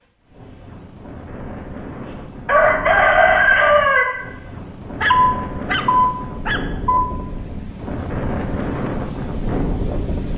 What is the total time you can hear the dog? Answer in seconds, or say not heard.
2 s.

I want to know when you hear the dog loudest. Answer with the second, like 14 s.
5 s.